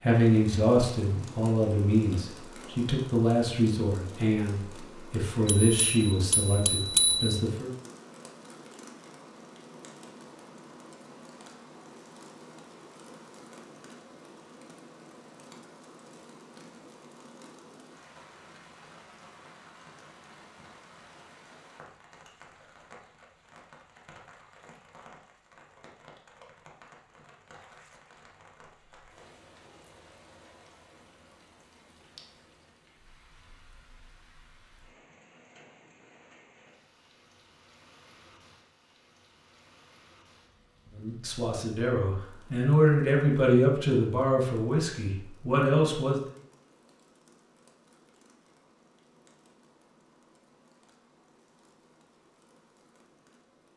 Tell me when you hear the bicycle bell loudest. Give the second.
7 s.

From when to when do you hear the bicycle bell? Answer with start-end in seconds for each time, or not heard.
5.5-7.4.